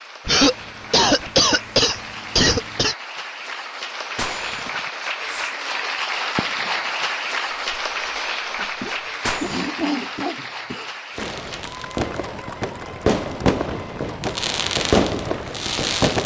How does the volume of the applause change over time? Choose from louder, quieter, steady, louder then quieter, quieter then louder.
louder then quieter.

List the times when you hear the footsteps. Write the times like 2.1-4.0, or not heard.
not heard.